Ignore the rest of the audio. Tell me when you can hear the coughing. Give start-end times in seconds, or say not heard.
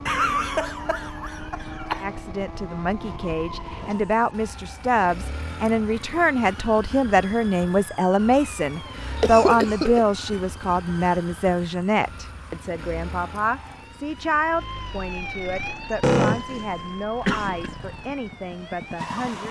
0.1-2.0, 9.2-10.1, 16.0-17.7.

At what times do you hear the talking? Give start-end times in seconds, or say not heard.
2.0-19.4.